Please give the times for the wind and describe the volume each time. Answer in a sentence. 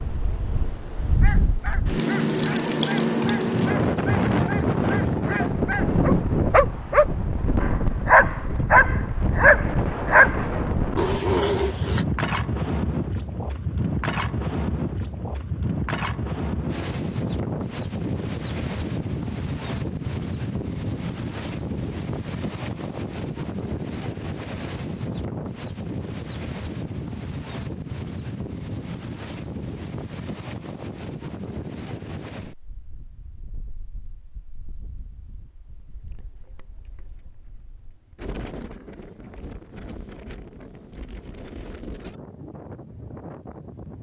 The wind can be heard from 0.0 to 43.9 s, getting quieter.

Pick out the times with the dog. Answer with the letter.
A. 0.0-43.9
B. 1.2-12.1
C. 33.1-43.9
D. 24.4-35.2
B.